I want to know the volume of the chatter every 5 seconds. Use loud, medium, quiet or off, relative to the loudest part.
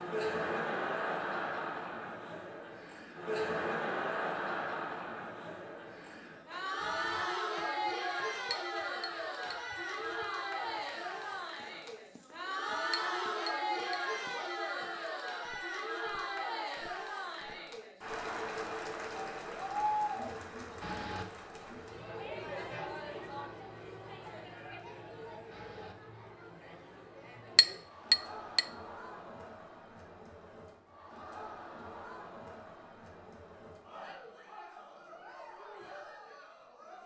loud, loud, loud, loud, medium, quiet, quiet, quiet.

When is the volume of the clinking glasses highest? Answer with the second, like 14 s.
28 s.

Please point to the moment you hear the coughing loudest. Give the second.
21 s.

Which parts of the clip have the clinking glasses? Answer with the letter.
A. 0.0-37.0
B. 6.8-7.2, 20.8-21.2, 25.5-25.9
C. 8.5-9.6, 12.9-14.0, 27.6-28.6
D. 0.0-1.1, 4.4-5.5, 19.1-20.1
C.